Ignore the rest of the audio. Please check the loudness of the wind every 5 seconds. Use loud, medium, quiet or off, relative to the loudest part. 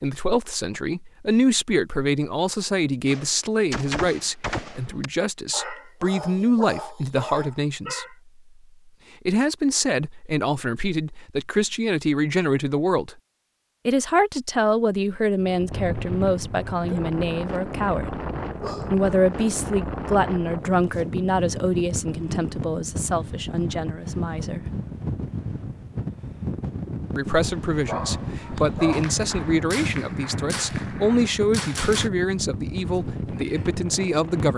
off, off, off, loud, loud, loud, loud.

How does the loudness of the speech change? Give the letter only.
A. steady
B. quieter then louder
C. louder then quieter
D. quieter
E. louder
A.